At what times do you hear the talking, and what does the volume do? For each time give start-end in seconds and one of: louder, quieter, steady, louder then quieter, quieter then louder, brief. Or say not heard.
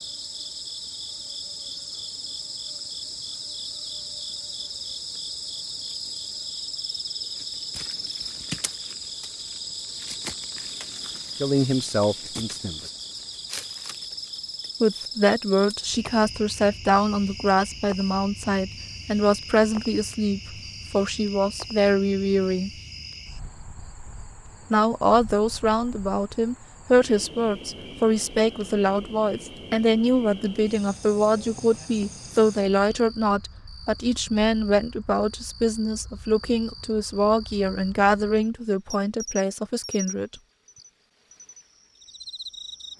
11.4-12.8 brief
14.8-22.7 steady
24.7-40.4 steady.